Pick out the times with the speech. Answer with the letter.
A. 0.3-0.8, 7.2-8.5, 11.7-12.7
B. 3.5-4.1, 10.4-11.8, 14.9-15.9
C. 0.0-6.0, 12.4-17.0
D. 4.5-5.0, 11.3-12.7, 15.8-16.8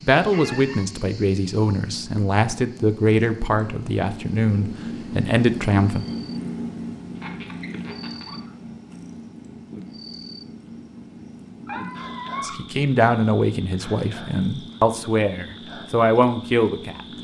C.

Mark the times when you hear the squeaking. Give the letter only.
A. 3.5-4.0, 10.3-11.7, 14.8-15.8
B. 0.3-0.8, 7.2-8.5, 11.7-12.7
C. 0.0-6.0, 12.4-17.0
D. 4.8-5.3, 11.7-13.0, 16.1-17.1
B.